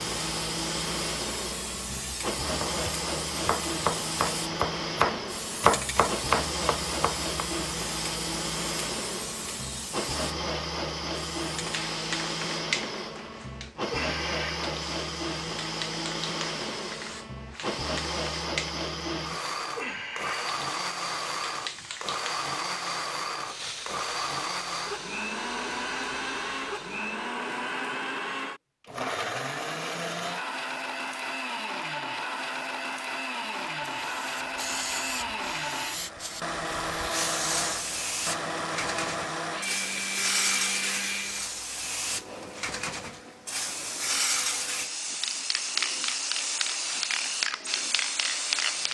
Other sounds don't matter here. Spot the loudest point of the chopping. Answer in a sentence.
The loudest moment of the chopping is at 6 seconds.